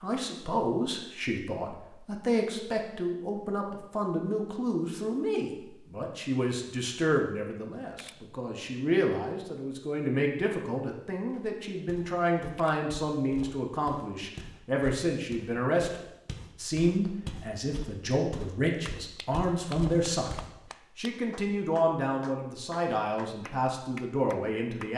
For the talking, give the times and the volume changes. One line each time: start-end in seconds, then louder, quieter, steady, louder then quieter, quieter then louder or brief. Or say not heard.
0.0-24.9 steady.